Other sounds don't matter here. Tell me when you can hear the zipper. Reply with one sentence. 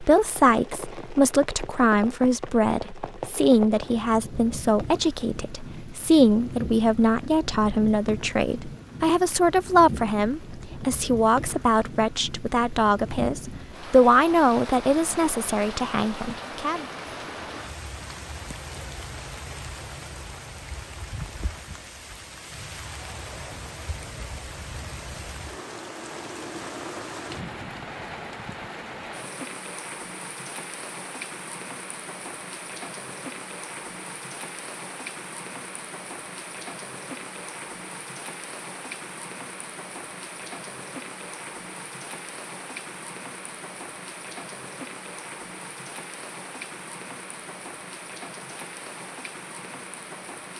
You can't hear the zipper here.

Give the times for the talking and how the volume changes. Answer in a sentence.
The talking can be heard from 0.0 to 16.9 s, at a steady volume.